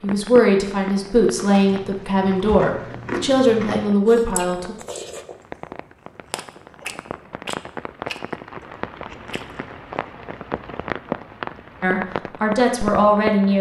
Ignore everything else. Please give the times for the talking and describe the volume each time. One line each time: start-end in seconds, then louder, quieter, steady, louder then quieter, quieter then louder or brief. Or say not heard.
0.0-4.8 steady
11.8-13.5 brief.